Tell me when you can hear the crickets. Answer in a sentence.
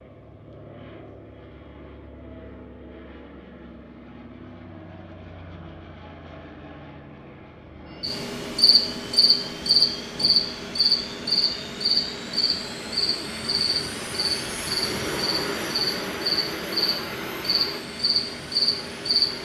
You can hear the crickets from 8.0 to 19.3 s.